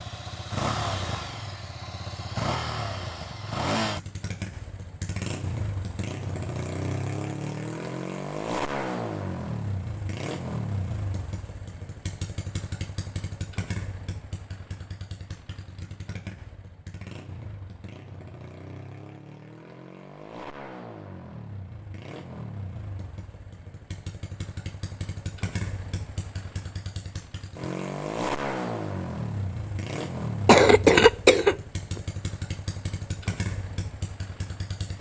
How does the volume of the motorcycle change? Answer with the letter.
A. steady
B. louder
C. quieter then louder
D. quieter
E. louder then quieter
C.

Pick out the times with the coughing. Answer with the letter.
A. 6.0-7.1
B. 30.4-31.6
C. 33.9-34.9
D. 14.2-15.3
B.